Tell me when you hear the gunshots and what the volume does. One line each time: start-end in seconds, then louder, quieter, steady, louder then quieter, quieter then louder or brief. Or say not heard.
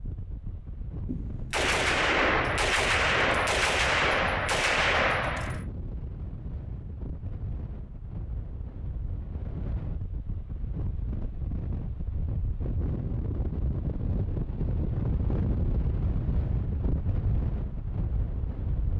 1.1-5.7 steady.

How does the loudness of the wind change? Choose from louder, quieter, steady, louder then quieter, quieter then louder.
louder.